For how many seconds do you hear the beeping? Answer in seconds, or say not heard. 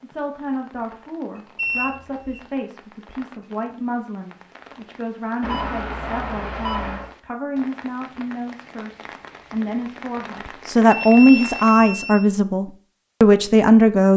4 s.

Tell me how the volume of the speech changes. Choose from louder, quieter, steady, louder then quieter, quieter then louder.
louder.